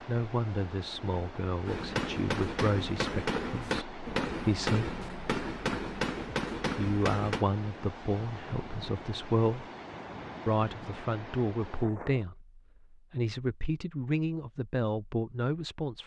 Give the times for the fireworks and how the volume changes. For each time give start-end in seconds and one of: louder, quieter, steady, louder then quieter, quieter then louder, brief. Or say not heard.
1.6-7.5 steady.